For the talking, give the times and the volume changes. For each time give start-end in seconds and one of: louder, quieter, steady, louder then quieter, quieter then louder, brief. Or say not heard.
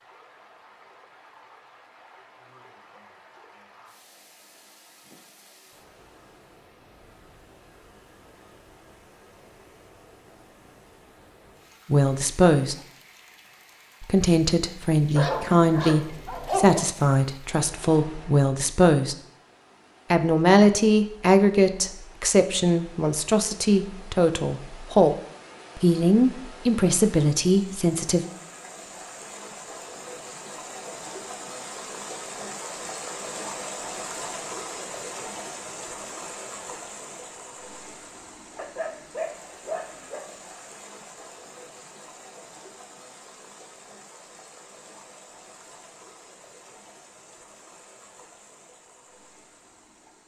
11.9-12.8 brief
14.0-19.1 steady
20.1-25.1 quieter
25.8-28.2 brief.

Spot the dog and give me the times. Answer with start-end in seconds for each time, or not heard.
15.2-16.9, 38.5-40.2.